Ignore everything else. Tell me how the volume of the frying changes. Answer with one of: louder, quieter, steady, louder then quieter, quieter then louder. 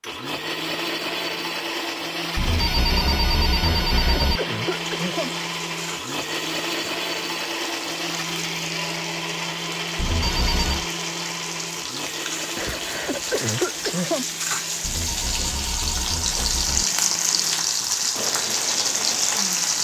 louder.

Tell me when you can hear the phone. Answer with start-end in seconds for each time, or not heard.
2.4-4.4, 9.9-10.8, 14.8-16.9.